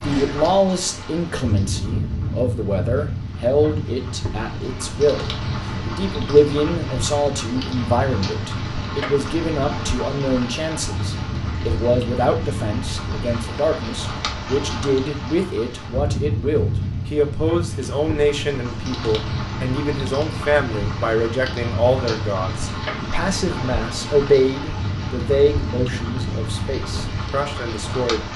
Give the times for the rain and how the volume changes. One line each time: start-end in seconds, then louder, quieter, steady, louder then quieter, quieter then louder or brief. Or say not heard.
0.0-28.3 steady.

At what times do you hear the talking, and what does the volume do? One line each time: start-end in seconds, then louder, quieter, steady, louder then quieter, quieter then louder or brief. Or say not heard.
0.0-28.2 steady.